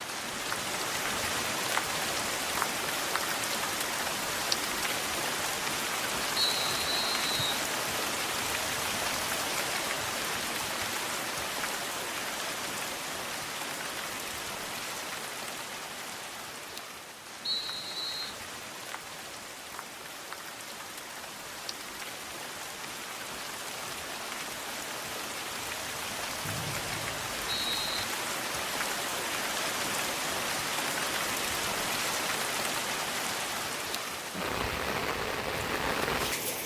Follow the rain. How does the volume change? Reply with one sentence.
The loudness of the rain goes down, then up.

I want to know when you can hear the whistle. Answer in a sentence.
The whistle can be heard from 6.3 to 7.7 s, from 17.4 to 18.4 s and from 26.4 to 28.1 s.